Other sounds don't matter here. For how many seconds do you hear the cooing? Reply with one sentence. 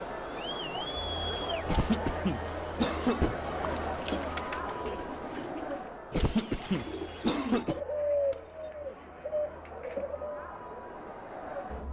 The cooing can be heard for 7 seconds in total.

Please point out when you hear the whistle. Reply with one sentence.
You can't hear the whistle here.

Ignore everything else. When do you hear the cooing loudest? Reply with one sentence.
The loudest moment of the cooing is at 8 seconds.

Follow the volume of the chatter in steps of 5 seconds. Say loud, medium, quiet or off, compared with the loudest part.
loud, medium, medium.